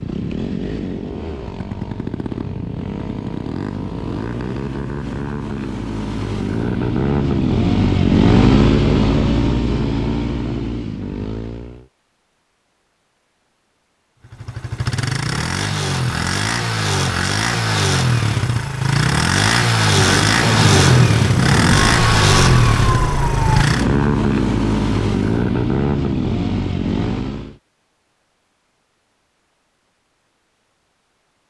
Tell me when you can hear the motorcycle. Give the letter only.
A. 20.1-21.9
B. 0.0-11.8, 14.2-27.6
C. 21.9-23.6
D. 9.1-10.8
B.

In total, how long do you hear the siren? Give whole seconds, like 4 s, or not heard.
2 s.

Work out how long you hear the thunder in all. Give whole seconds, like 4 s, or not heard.
2 s.